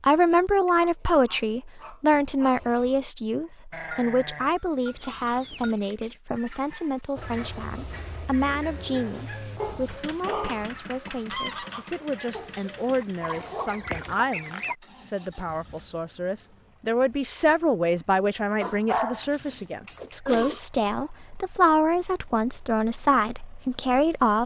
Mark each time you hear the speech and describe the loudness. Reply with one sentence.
The speech can be heard from 0.0 to 24.4 s, getting quieter then louder.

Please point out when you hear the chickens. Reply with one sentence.
The chickens can be heard from 4.8 to 14.8 s.